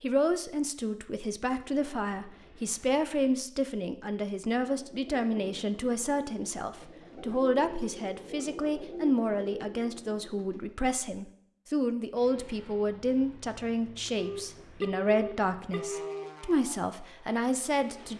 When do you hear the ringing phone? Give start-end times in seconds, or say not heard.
14.2-16.2.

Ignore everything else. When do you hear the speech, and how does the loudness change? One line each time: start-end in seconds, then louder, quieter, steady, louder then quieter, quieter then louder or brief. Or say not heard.
0.0-18.1 steady.